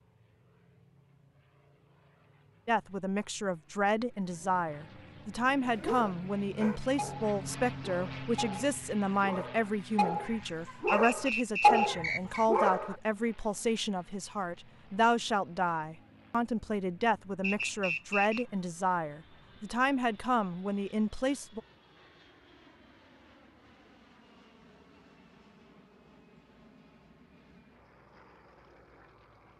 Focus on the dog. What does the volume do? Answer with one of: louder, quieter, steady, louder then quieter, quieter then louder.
louder.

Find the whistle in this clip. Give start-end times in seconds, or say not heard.
10.8-12.4, 17.4-18.4.